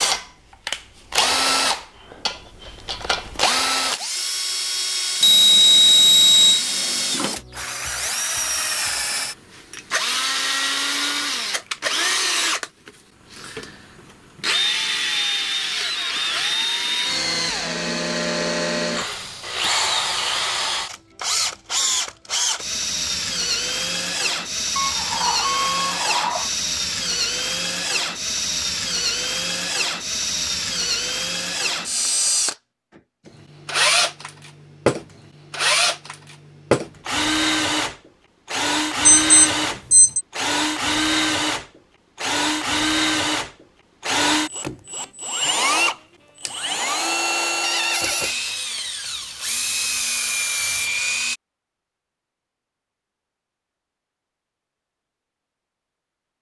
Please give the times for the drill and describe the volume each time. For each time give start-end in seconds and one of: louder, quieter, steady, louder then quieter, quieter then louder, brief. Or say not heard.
0.0-51.4 steady.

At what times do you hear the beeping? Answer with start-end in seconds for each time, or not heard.
5.2-6.7, 24.8-26.5, 39.0-40.2.